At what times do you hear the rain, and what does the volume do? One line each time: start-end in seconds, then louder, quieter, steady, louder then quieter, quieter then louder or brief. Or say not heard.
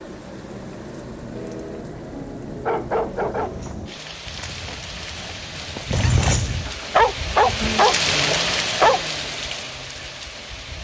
0.0-10.7 louder.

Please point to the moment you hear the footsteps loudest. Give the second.
6 s.